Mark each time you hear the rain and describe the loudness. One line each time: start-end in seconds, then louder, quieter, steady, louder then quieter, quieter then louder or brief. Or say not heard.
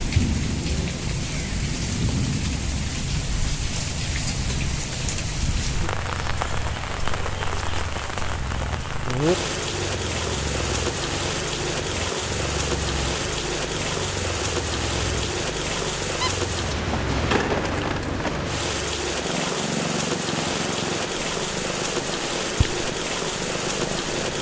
0.0-24.3 steady.